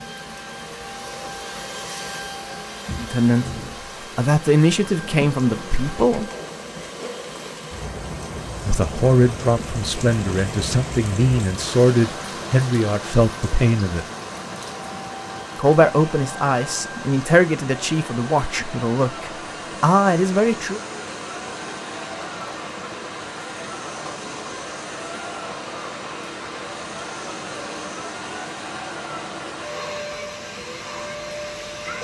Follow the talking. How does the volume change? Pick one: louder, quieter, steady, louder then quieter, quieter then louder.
steady.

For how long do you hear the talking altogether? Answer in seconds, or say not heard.
14 s.